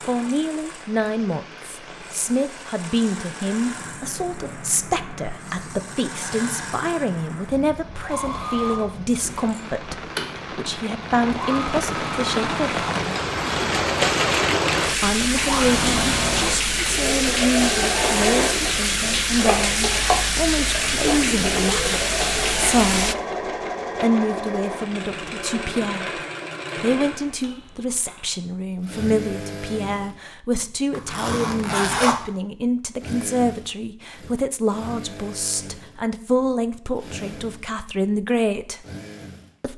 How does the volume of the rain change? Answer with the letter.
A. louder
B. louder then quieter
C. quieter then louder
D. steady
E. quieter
A.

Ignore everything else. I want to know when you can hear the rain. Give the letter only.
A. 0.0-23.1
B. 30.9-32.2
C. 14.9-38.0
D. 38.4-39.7
A.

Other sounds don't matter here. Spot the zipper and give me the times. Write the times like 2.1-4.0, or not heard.
30.9-32.2.